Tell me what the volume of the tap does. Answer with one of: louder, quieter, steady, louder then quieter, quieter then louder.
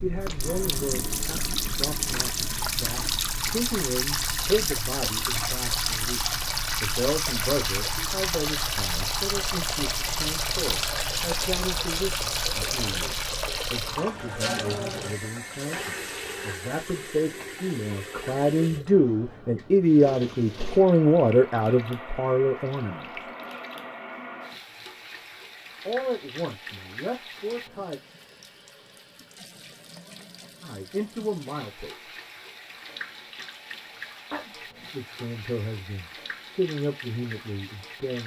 quieter.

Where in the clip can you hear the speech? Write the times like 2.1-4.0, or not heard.
0.0-23.2, 25.9-28.0, 30.6-31.9, 34.3-38.2.